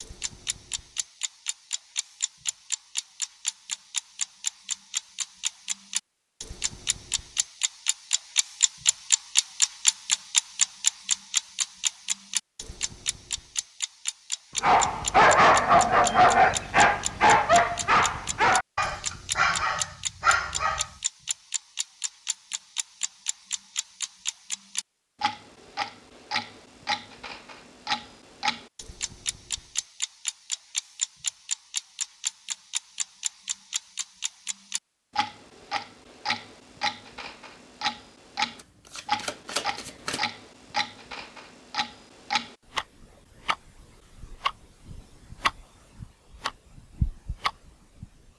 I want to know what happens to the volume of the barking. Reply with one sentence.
The volume of the barking goes down.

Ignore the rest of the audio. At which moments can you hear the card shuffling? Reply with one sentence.
The card shuffling can be heard from 38.5 to 40.2 s.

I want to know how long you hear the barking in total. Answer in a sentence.
You can hear the barking for 6 seconds altogether.